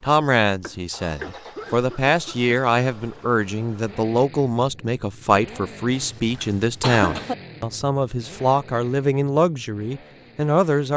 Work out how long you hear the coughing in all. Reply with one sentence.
The coughing can be heard for 3 seconds in total.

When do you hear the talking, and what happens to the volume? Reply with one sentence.
The talking can be heard from 0.0 to 10.9 s, at a steady volume.